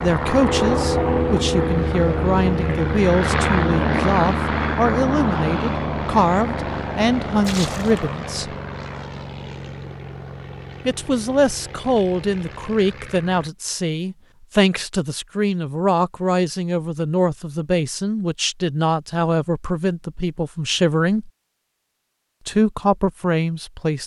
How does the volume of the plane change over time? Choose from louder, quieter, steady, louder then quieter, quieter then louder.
quieter.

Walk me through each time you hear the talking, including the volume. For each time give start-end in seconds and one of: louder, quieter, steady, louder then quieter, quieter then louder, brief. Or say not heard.
0.0-8.6 steady
10.8-21.3 steady
22.4-24.0 brief.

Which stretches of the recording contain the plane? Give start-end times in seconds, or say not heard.
0.0-13.5.